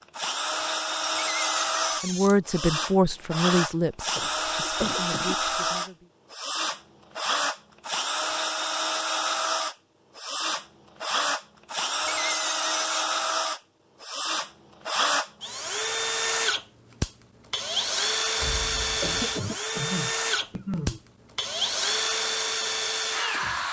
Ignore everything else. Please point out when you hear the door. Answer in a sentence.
You can hear the door from 1.1 to 2.4 s, from 11.9 to 13.1 s and from 18.4 to 19.2 s.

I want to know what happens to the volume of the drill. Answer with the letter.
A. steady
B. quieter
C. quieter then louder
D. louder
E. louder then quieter
A.